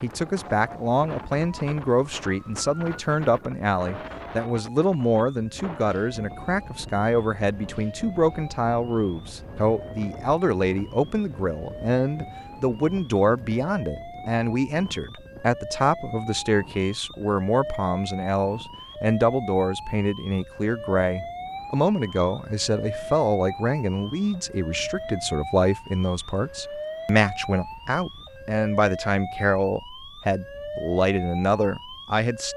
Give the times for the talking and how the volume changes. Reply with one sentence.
You can hear the talking from 0.0 to 32.5 s, at a steady volume.